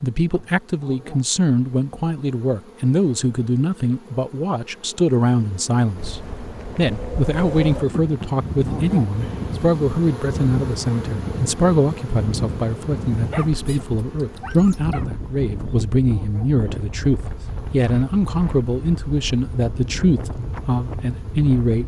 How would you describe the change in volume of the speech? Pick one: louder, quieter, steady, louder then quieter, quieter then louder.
steady.